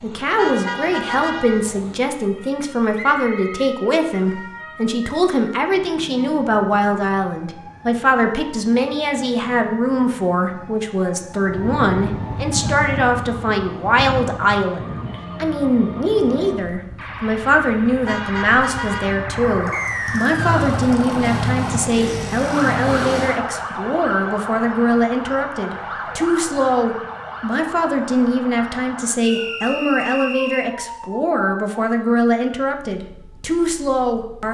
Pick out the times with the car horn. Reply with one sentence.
You can hear the car horn from 0.3 to 1.8 s and from 18.1 to 19.3 s.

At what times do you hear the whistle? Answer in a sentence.
You can hear the whistle from 3.0 to 4.3 s, from 19.7 to 20.6 s and from 29.2 to 30.8 s.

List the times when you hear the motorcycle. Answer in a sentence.
The motorcycle can be heard from 11.4 to 23.4 s.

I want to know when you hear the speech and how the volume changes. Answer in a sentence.
The speech can be heard from 0.0 to 34.4 s, at a steady volume.